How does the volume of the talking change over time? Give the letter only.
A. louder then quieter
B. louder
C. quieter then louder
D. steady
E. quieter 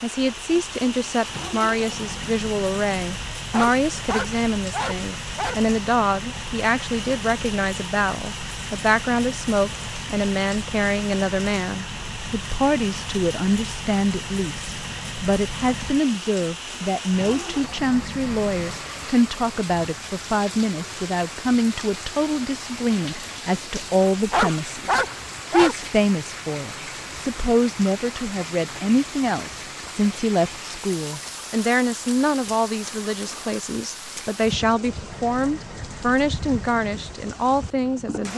D.